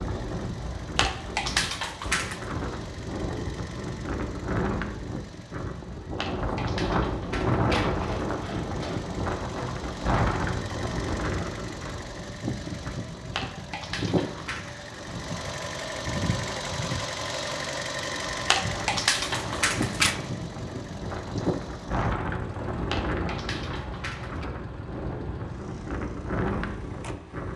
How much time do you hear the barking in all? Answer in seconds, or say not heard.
9 s.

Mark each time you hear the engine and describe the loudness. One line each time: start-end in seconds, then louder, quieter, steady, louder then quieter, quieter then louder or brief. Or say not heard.
0.0-27.5 louder then quieter.